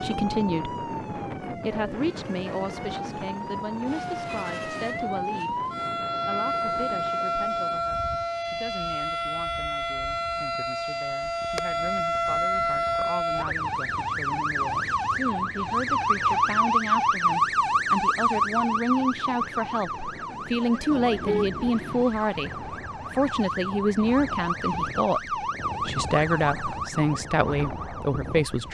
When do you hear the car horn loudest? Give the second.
21 s.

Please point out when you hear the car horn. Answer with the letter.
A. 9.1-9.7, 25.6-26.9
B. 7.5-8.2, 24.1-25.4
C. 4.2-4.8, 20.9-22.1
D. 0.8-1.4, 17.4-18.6
C.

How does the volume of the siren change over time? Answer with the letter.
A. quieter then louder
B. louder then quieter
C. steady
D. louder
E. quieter
B.